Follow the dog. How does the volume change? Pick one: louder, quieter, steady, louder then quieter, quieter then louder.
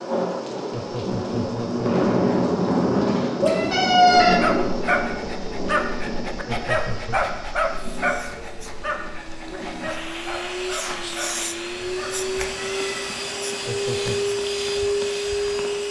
quieter.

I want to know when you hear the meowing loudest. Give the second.
4 s.